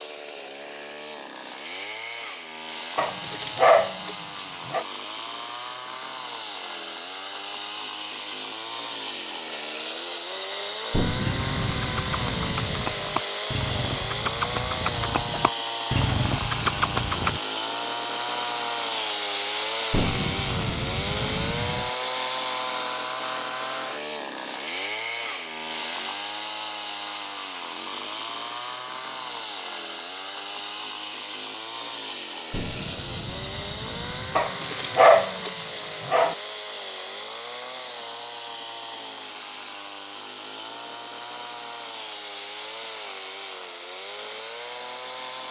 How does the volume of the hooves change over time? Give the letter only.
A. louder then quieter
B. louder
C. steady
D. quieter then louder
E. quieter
B.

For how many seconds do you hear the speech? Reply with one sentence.
You can't hear the speech here.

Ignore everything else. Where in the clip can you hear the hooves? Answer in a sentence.
The hooves can be heard from 11.2 to 17.4 s.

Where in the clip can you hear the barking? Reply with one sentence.
The barking can be heard from 3.0 to 4.8 s and from 34.4 to 36.4 s.